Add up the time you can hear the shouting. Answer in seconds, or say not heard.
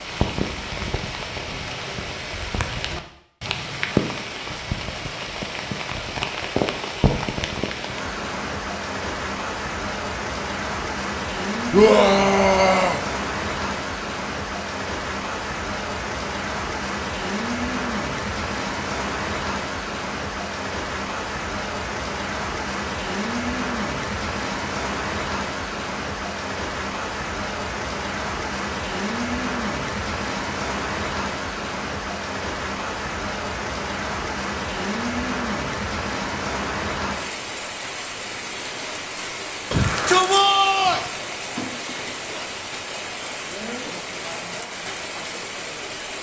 3 s.